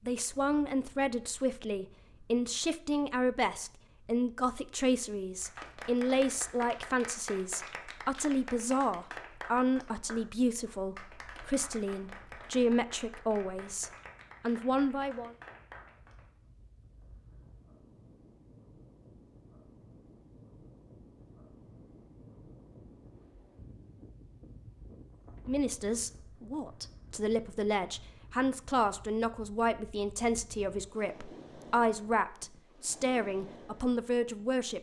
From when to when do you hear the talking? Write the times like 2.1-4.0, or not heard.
0.1-15.3, 25.4-34.7.